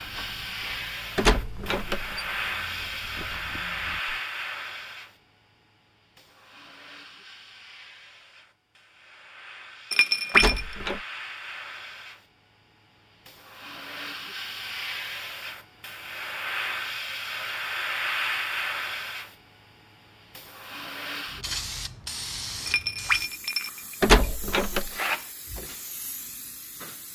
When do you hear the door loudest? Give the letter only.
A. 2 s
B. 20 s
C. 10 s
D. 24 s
D.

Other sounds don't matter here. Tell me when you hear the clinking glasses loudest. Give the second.
10 s.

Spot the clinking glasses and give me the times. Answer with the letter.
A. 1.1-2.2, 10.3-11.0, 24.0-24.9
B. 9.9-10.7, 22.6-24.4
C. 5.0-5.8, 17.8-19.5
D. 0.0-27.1
B.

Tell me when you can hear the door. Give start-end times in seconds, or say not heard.
1.1-2.2, 10.3-11.0, 24.0-24.9.